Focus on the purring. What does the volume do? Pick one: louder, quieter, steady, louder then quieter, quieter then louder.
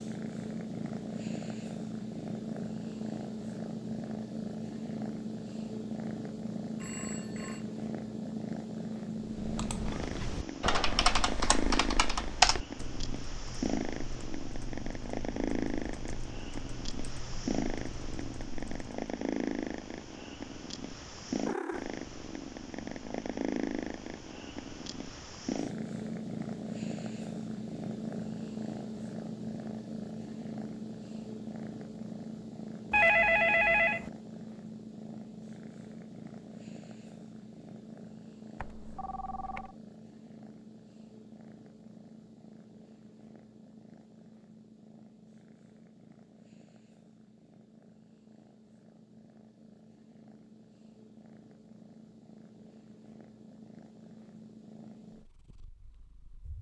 quieter.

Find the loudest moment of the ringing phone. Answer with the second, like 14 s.
33 s.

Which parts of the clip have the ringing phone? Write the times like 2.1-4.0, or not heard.
6.8-7.7, 32.9-34.1, 38.6-39.7.